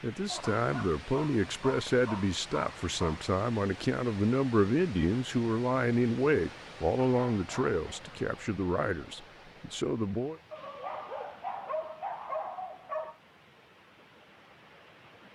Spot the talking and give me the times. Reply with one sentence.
The talking can be heard from 0.0 to 10.4 s.